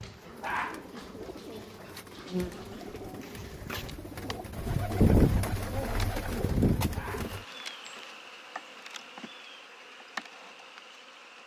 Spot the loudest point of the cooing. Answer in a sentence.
The volume of the cooing peaks at 5 seconds.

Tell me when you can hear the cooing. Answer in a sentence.
You can hear the cooing from 0.2 to 7.5 s.